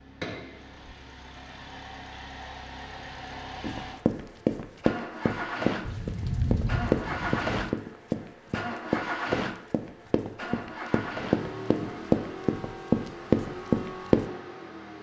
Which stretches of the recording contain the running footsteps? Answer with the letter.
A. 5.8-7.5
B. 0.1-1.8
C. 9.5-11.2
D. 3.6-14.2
D.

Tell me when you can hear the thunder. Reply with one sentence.
The thunder can be heard from 5.8 to 7.5 s.